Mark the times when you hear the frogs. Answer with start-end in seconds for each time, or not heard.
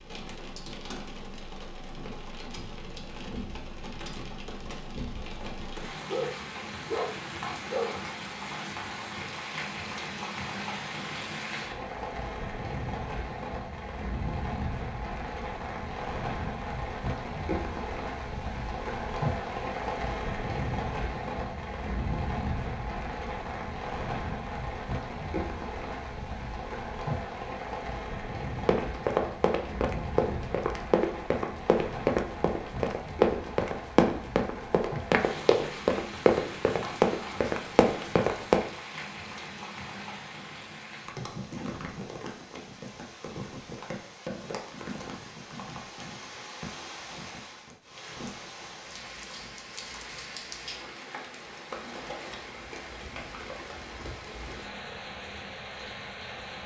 not heard.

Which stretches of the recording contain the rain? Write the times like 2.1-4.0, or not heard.
0.0-56.6.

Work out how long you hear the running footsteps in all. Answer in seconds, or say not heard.
10 s.